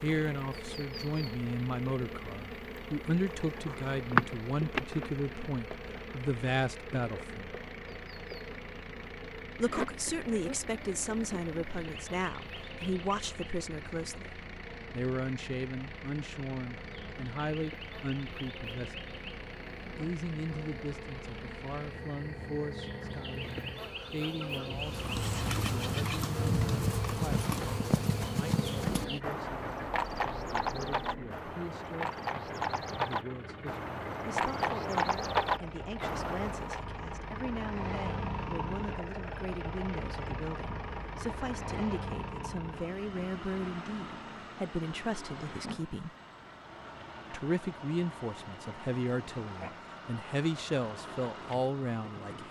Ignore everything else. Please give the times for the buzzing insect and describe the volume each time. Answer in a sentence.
The buzzing insect can be heard from 0.0 to 29.2 s, getting quieter then louder.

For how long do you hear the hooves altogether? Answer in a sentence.
You can hear the hooves for 12 seconds altogether.